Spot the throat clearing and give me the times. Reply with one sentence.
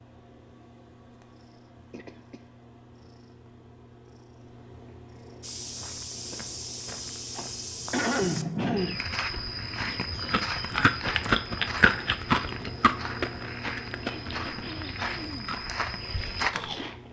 You can hear the throat clearing from 1.9 to 2.5 s, from 7.3 to 9.0 s and from 14.0 to 15.4 s.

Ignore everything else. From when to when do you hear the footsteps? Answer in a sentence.
You can hear the footsteps from 5.4 to 16.9 s.